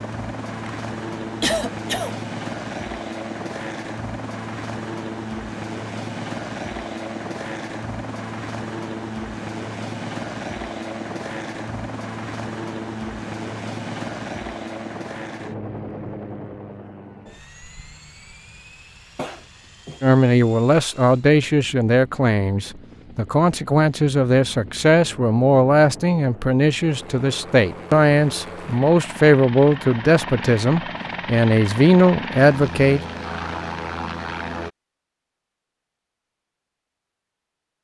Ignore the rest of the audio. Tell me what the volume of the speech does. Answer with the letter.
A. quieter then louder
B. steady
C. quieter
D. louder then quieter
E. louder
B.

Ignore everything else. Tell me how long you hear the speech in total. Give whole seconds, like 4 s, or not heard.
13 s.